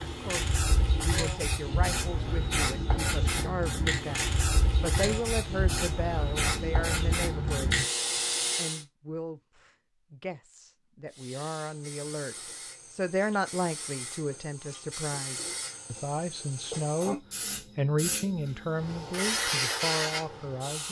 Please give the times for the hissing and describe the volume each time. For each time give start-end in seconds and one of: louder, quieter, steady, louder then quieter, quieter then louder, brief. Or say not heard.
0.0-8.8 steady
11.1-20.8 louder.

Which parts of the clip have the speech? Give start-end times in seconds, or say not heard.
0.1-7.8, 8.6-20.8.